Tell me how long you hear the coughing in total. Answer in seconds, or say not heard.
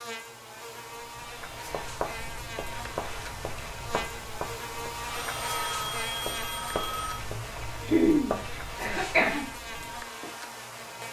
2 s.